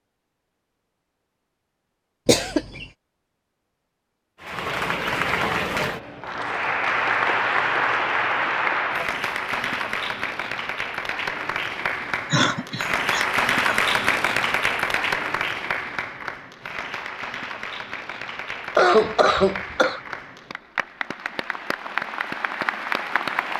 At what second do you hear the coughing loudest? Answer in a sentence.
The loudest moment of the coughing is at 19 seconds.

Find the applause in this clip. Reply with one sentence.
The applause can be heard from 4.4 to 23.5 s.